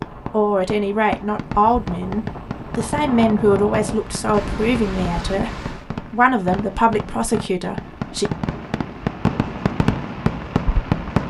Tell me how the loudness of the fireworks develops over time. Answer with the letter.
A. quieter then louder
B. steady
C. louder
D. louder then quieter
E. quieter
C.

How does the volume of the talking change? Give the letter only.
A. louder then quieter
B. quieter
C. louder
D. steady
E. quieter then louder
D.